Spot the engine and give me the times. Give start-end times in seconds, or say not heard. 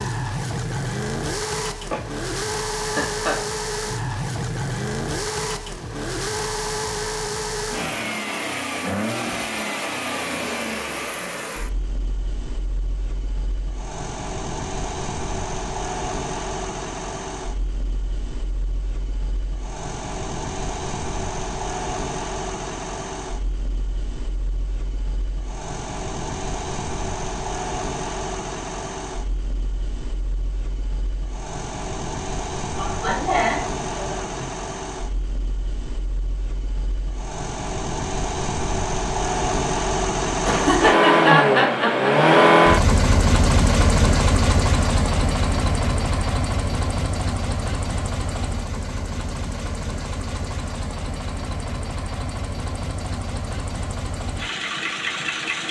0.0-55.6.